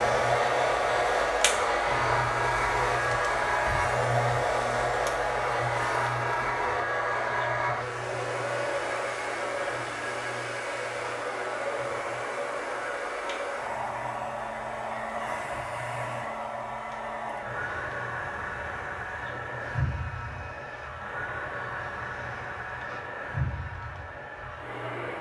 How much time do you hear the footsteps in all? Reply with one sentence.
You can't hear the footsteps here.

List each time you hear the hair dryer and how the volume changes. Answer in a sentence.
You can hear the hair dryer from 0.0 to 25.1 s, getting quieter.